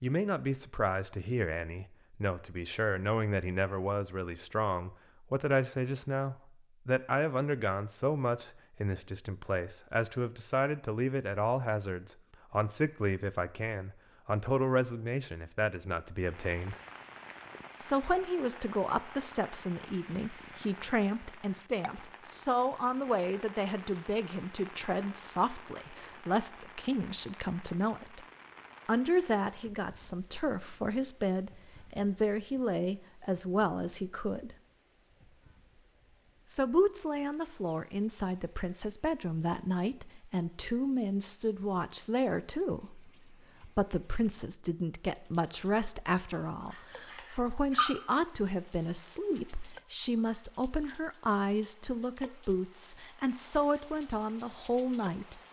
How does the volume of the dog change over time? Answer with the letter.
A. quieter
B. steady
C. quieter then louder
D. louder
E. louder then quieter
E.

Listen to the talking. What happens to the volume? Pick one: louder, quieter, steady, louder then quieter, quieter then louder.
steady.